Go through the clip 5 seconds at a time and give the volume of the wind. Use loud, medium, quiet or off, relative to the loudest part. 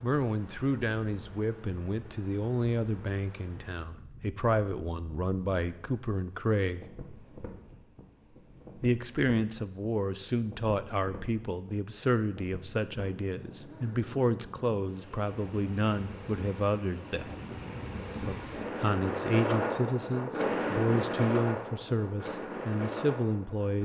quiet, quiet, quiet, loud, loud.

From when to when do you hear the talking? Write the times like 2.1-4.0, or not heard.
0.0-6.9, 8.8-17.3, 18.2-23.8.